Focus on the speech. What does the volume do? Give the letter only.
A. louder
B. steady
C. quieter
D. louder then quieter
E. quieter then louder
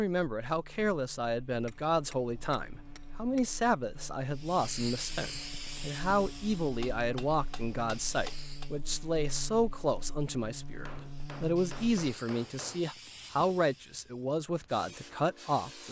B.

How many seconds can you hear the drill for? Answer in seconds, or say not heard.
not heard.